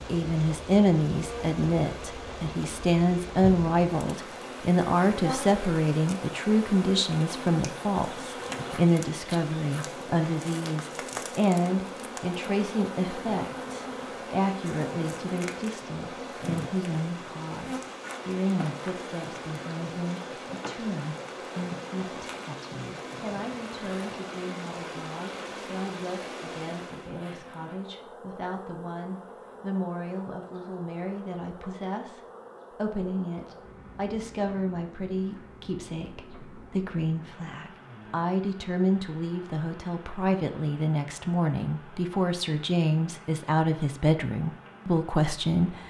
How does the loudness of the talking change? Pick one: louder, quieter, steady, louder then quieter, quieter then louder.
quieter then louder.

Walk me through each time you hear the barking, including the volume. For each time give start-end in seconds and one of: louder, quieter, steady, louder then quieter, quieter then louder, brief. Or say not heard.
not heard.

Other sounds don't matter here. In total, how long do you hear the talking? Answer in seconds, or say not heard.
46 s.